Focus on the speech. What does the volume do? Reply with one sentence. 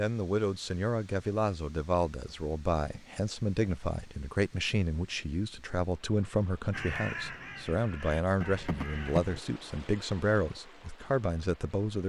The volume of the speech stays about the same.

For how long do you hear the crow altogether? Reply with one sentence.
The crow can be heard for 3 seconds in total.